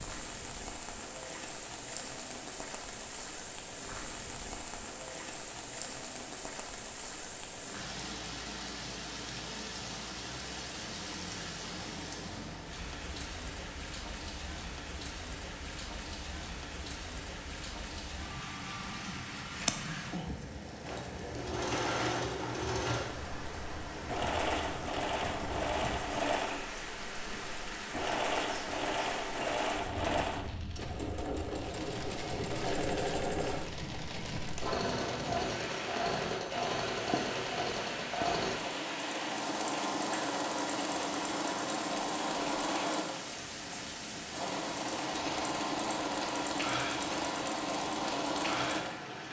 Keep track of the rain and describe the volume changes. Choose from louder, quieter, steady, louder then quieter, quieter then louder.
steady.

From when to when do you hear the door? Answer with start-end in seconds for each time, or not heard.
30.0-31.0.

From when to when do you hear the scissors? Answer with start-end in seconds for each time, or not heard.
18.6-19.9.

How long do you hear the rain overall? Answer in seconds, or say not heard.
49 s.